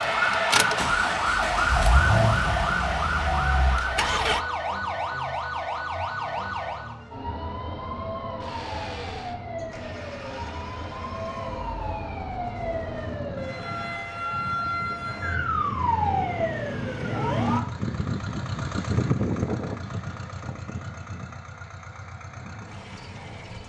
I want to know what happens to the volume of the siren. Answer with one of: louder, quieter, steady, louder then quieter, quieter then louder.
quieter then louder.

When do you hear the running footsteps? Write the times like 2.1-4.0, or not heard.
not heard.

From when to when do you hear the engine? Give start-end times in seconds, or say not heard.
0.0-4.4, 8.4-23.6.